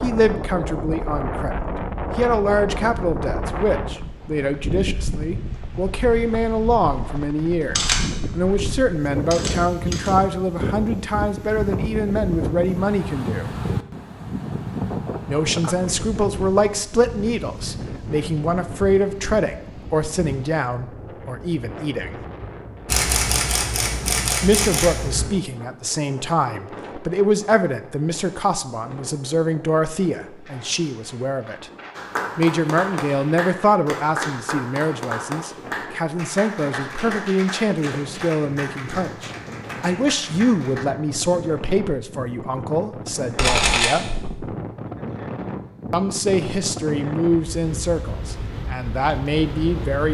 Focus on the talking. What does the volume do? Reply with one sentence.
The loudness of the talking stays about the same.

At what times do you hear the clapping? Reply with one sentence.
You can hear the clapping from 31.9 to 40.9 s.